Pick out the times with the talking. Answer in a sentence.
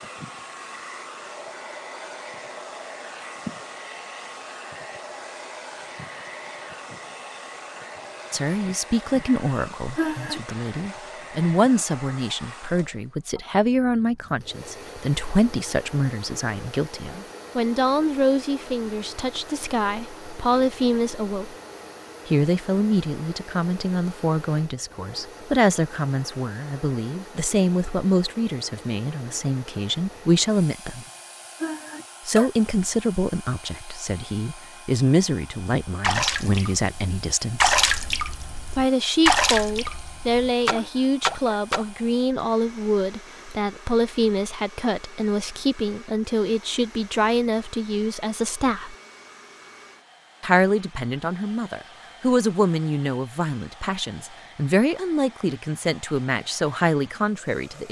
You can hear the talking from 8.3 to 21.6 s, from 22.2 to 31.1 s, from 32.2 to 37.8 s, from 38.8 to 49.0 s and from 50.4 to 57.8 s.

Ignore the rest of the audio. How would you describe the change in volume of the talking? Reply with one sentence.
The loudness of the talking stays about the same.